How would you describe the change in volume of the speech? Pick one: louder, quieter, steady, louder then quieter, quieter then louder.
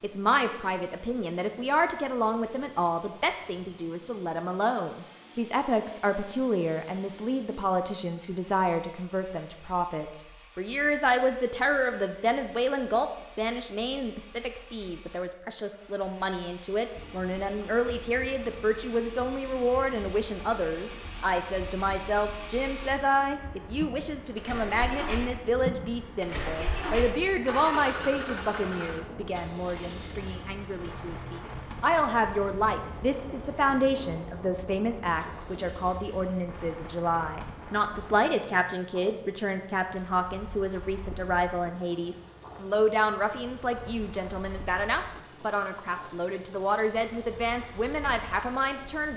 steady.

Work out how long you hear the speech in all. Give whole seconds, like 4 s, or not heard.
49 s.